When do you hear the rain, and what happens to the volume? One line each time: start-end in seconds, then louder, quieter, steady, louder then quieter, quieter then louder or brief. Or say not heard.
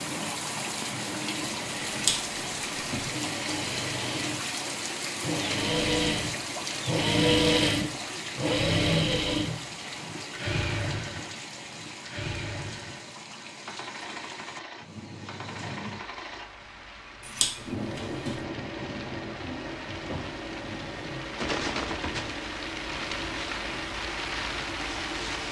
0.0-25.4 quieter then louder.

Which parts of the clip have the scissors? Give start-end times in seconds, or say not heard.
1.9-3.0, 17.2-18.4.